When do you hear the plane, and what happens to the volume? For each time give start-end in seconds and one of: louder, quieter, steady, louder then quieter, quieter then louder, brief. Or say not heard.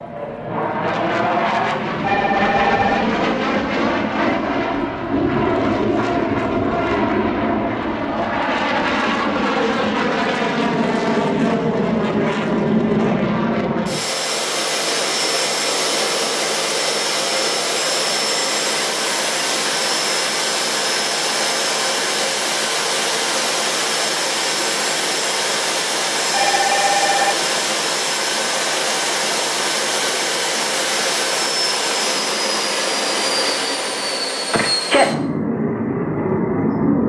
0.0-37.0 steady.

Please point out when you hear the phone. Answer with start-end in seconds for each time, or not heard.
2.0-3.0, 26.3-27.4.